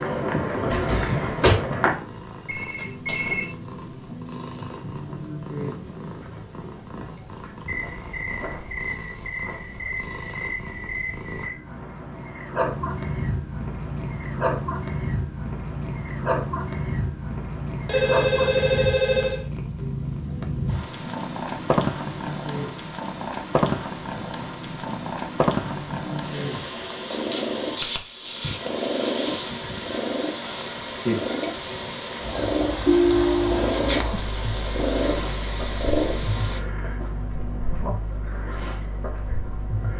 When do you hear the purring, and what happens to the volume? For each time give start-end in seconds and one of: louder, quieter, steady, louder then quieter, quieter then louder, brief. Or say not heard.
0.0-36.6 louder.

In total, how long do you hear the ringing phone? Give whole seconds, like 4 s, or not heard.
4 s.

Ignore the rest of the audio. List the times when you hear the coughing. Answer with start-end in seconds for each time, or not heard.
0.7-1.6.